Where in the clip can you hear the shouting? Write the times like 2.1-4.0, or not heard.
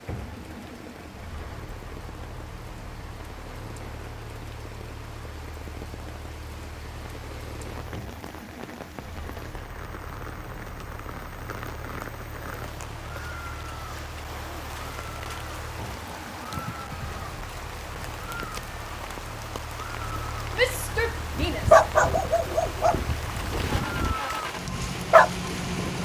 20.5-21.8.